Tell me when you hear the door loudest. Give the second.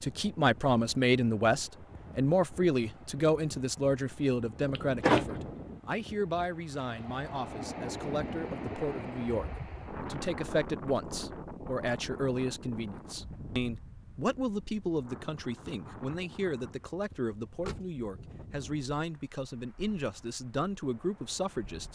5 s.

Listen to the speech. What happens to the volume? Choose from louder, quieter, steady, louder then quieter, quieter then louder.
quieter.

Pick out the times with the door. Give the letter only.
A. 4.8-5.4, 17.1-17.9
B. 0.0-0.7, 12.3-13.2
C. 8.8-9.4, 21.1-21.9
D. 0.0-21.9
A.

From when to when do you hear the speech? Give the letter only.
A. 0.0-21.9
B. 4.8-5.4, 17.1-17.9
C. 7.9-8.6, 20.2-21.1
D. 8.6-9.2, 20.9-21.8
A.